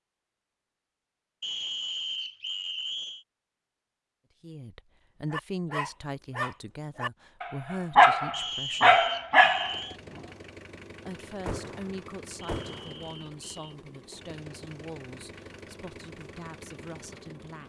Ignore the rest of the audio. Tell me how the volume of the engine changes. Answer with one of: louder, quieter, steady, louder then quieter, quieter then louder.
steady.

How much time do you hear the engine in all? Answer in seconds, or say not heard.
8 s.